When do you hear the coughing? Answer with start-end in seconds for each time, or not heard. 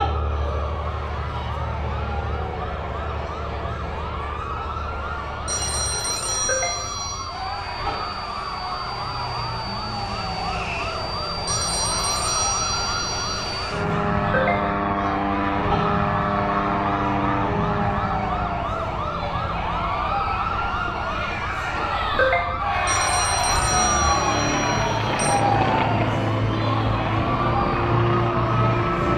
not heard.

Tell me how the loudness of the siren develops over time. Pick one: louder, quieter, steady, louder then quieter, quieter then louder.
louder.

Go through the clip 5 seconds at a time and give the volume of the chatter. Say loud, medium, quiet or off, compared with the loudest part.
medium, medium, medium, medium, loud, loud.